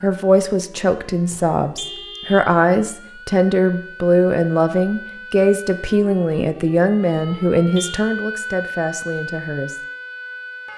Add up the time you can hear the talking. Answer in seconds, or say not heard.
10 s.